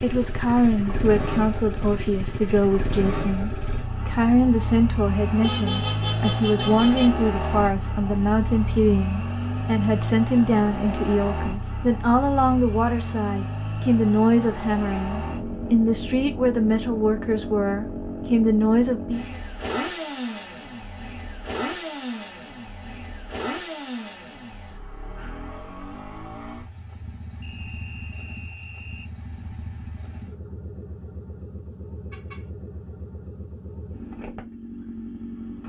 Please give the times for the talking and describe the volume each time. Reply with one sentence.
The talking can be heard from 0.0 to 19.4 s, at a steady volume.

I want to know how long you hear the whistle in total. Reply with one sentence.
The whistle can be heard for 2 seconds in total.